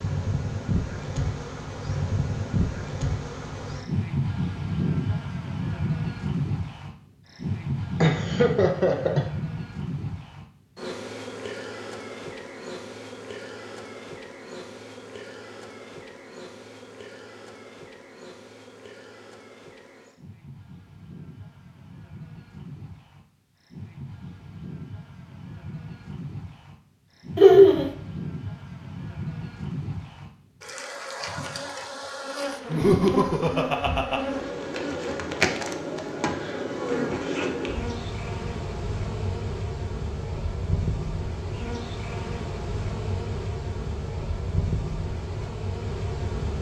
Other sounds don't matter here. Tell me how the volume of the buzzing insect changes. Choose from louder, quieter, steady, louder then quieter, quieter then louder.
quieter then louder.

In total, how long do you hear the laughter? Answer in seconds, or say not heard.
3 s.